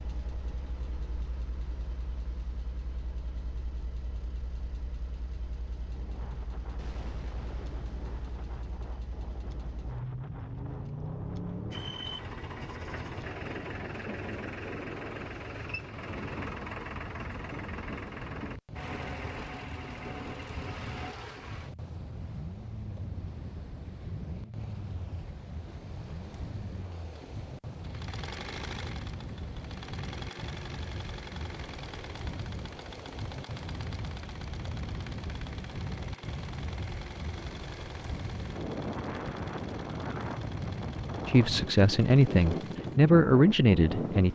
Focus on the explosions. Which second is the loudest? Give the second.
7 s.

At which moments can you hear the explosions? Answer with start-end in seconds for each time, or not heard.
6.8-8.6.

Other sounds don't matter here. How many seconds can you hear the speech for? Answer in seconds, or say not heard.
3 s.